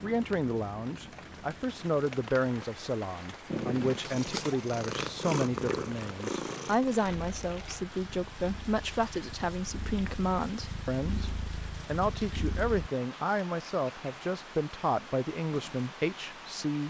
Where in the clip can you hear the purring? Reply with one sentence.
You can hear the purring from 3.5 to 12.9 s.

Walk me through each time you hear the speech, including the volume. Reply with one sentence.
The speech can be heard from 0.0 to 16.8 s, at a steady volume.